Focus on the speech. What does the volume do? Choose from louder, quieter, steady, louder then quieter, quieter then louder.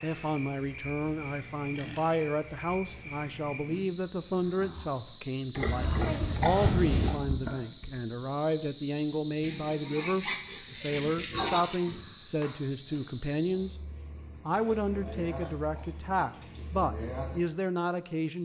steady.